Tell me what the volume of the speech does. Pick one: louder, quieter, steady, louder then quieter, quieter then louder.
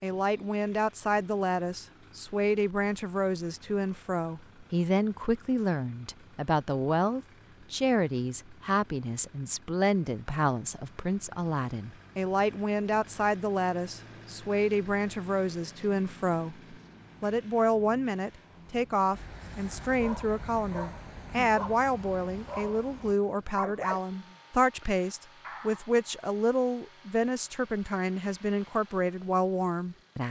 steady.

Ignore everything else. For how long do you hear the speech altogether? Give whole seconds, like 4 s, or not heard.
30 s.